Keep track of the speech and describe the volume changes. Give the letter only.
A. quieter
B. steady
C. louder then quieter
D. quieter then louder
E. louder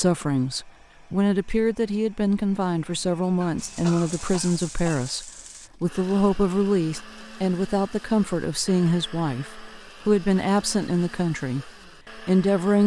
B.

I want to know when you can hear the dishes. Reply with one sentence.
The dishes can't be heard in this clip.